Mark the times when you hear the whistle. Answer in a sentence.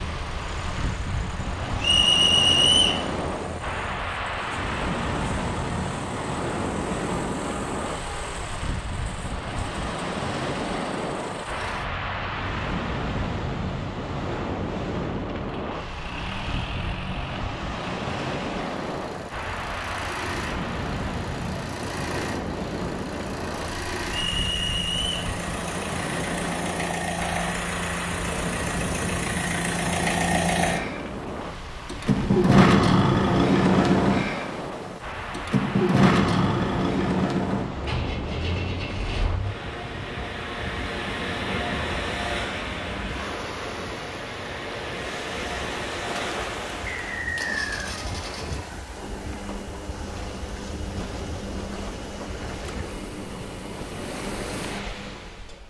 You can hear the whistle from 1.8 to 3.0 s, from 24.1 to 25.3 s and from 46.9 to 47.9 s.